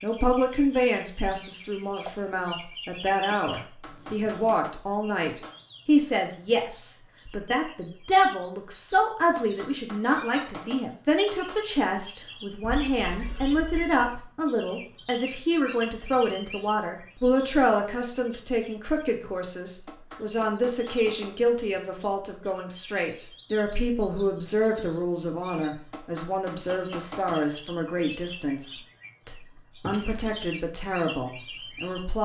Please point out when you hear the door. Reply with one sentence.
The door can't be heard in this clip.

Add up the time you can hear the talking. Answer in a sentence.
The talking can be heard for 32 seconds in total.